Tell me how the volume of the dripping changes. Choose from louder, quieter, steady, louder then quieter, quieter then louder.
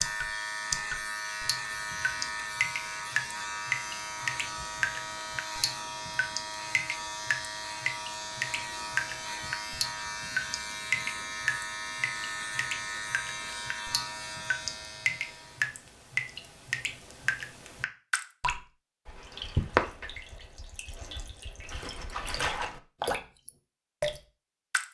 steady.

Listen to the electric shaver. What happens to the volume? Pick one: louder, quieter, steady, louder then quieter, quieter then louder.
steady.